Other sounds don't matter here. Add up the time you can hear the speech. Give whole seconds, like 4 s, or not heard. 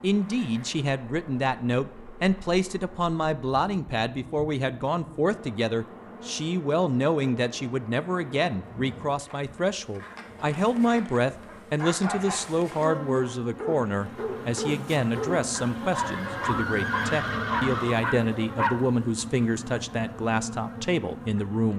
22 s.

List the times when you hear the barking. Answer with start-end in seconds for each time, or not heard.
10.8-18.8.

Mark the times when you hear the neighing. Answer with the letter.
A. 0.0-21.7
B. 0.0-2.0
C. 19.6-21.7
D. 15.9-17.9
D.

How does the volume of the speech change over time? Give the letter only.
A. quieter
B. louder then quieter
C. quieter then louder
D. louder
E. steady
E.